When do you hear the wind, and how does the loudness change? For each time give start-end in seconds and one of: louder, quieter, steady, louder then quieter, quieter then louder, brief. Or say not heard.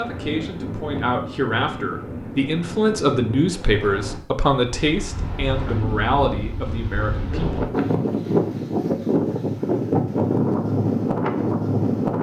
0.0-12.1 louder.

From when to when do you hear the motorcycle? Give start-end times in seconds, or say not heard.
not heard.